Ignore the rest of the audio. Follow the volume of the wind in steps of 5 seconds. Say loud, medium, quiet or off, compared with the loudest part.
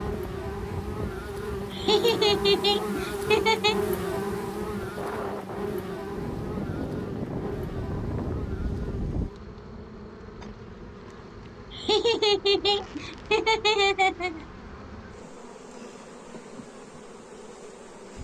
medium, loud, off, off.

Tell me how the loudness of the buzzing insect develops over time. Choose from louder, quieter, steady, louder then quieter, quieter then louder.
quieter.